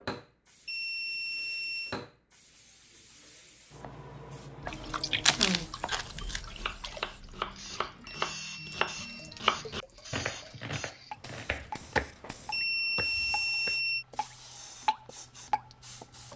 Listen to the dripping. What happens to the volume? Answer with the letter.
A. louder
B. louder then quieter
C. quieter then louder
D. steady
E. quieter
C.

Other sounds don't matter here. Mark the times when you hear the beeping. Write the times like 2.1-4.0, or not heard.
0.7-1.9, 8.1-9.3, 12.5-14.1.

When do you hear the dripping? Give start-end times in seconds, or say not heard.
4.6-16.3.